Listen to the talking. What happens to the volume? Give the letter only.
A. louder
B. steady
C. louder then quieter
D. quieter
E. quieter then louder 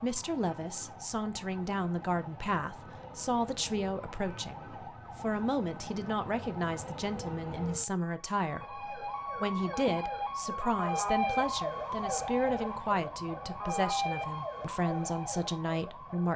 B.